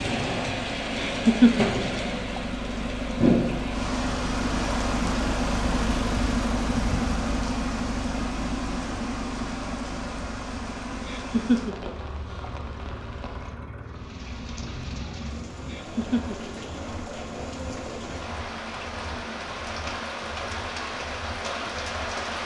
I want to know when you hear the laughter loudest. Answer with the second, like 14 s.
1 s.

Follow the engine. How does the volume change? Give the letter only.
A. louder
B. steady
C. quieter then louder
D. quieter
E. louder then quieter
D.